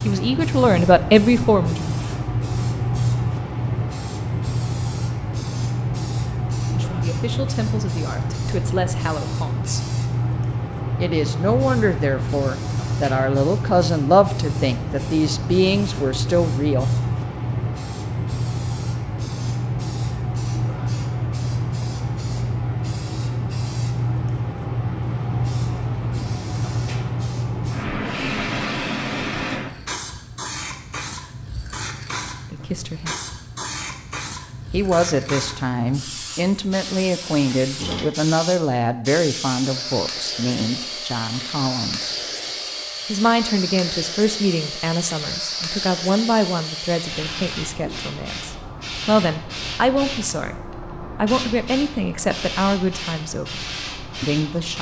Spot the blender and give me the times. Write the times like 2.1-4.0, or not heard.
not heard.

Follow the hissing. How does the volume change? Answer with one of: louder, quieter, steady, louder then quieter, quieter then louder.
quieter.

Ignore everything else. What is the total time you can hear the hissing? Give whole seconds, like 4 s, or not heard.
55 s.